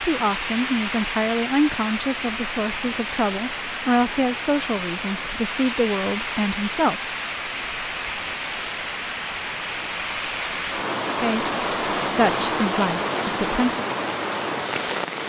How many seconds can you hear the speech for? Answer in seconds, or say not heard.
10 s.